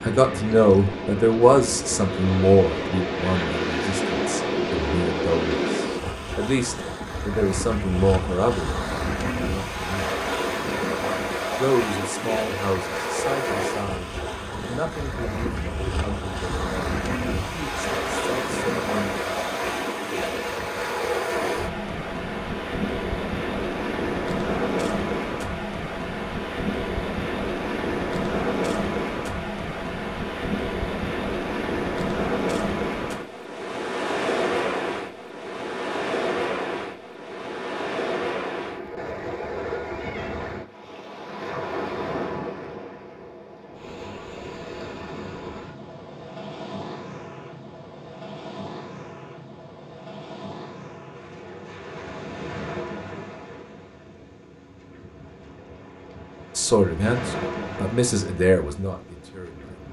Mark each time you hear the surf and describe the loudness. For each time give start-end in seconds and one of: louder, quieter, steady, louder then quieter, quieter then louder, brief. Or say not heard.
0.0-59.8 quieter.